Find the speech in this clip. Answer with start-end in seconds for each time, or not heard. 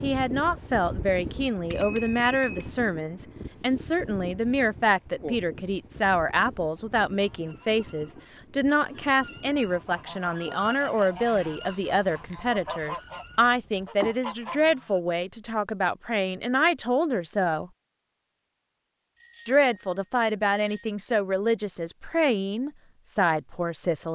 0.0-17.7, 19.4-24.1.